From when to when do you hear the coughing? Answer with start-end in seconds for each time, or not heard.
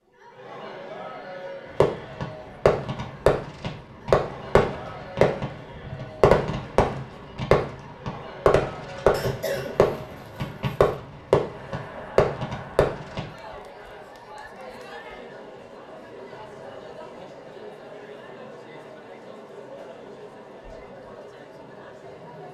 9.1-10.9.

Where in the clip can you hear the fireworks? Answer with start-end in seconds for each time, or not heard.
1.8-13.3.